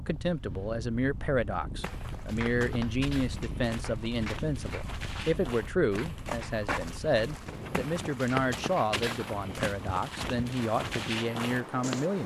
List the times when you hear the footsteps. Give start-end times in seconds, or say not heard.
1.8-12.1.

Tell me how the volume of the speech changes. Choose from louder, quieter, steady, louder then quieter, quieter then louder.
steady.